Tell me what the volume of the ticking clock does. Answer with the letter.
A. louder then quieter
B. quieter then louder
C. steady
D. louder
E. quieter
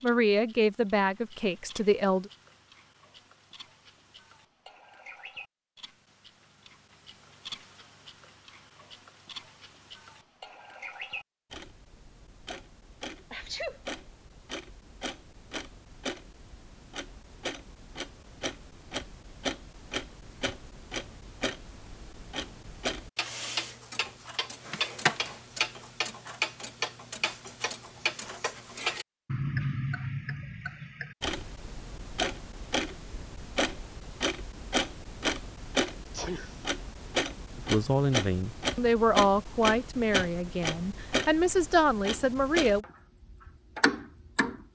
D.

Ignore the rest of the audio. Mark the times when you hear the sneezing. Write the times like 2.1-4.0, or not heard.
13.3-13.8, 36.1-36.6.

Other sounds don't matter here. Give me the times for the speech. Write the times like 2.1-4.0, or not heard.
0.0-2.3, 37.5-42.9.